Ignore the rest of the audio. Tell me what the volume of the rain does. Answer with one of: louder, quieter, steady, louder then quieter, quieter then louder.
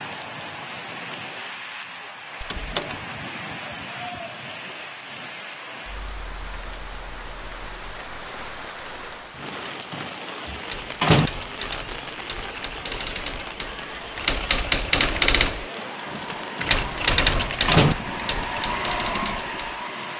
steady.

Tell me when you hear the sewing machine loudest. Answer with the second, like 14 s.
19 s.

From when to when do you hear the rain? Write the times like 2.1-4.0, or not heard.
0.0-20.1.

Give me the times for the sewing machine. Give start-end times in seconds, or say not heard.
14.9-20.1.